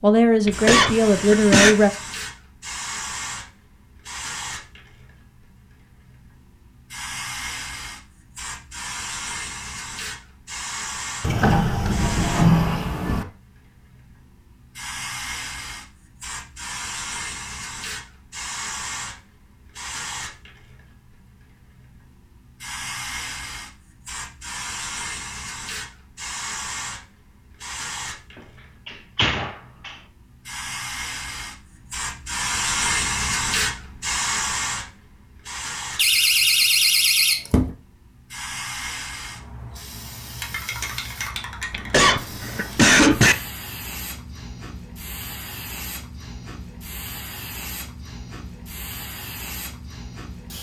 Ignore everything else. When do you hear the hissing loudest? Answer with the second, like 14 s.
33 s.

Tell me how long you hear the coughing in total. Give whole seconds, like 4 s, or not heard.
3 s.